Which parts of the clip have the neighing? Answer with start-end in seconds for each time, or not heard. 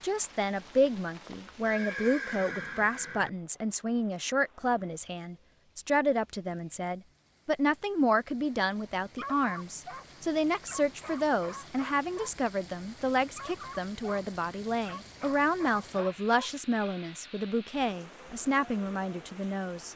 1.6-3.3.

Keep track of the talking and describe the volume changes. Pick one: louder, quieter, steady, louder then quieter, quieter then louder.
steady.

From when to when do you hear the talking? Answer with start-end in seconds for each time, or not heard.
0.0-19.9.